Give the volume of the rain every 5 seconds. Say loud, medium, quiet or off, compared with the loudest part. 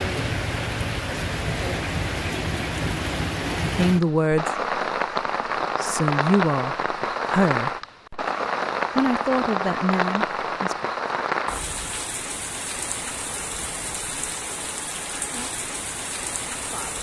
loud, loud, loud, medium.